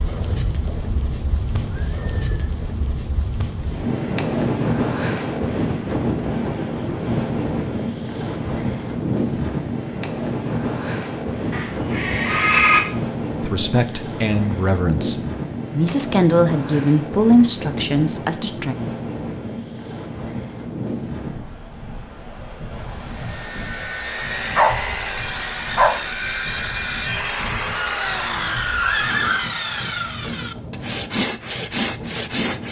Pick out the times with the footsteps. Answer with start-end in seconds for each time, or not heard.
not heard.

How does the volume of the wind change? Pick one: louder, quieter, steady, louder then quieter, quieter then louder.
quieter.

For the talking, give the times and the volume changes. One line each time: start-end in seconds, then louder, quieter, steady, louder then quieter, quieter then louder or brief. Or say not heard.
13.4-18.8 louder then quieter.